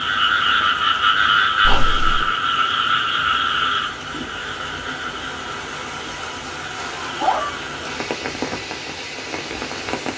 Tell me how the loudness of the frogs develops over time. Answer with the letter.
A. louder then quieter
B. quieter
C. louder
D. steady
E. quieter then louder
B.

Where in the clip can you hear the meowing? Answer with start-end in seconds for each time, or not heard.
1.6-2.2, 6.8-7.6.